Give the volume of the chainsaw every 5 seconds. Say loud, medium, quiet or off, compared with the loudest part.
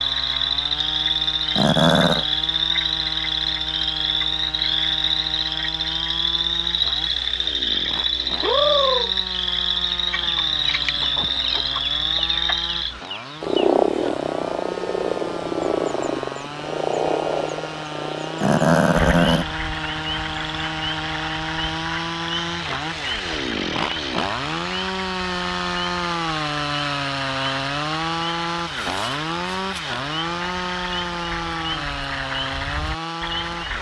medium, medium, medium, medium, loud, loud, loud.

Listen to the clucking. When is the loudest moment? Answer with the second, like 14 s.
9 s.